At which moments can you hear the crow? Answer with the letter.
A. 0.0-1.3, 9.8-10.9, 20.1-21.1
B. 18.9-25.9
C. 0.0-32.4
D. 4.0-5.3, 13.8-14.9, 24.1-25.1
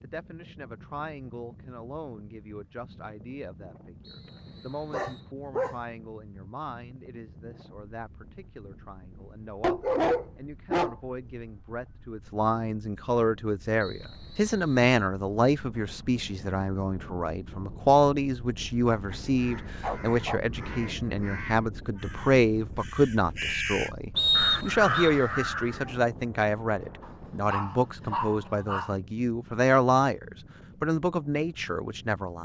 B.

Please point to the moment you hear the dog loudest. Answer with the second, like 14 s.
10 s.